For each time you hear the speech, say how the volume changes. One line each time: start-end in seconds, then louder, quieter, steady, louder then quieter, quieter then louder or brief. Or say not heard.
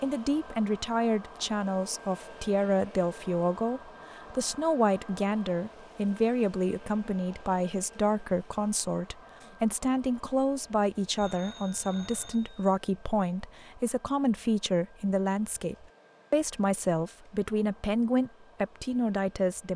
0.0-19.7 steady.